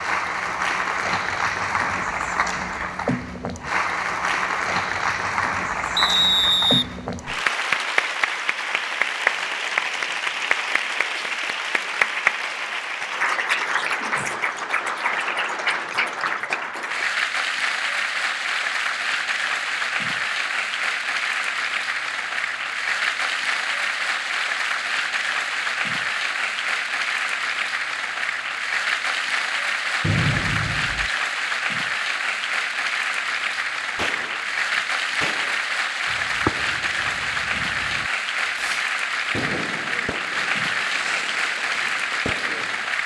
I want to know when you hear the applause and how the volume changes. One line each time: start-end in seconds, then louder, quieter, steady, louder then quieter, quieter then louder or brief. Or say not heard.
0.0-43.0 steady.